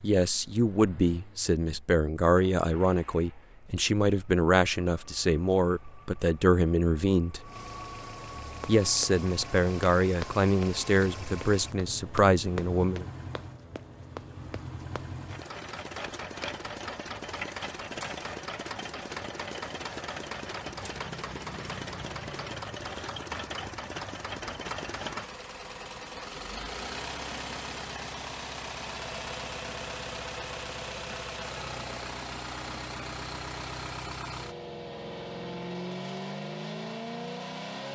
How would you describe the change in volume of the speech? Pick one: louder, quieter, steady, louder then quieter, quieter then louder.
steady.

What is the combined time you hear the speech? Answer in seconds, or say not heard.
12 s.